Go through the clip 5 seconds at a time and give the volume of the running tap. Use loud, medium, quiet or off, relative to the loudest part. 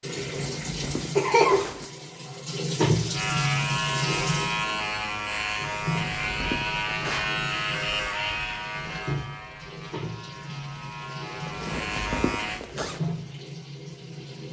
loud, medium, medium.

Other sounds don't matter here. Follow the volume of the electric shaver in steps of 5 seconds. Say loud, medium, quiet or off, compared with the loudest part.
loud, loud, medium.